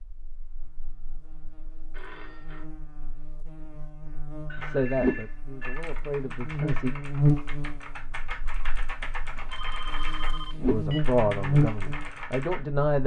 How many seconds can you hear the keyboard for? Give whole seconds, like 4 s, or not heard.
8 s.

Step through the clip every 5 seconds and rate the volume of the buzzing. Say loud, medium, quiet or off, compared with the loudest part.
quiet, loud, loud.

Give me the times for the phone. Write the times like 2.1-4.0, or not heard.
1.9-2.6, 4.5-5.8, 9.3-11.1.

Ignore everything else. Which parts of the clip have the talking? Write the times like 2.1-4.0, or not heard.
4.5-6.9, 10.7-13.0.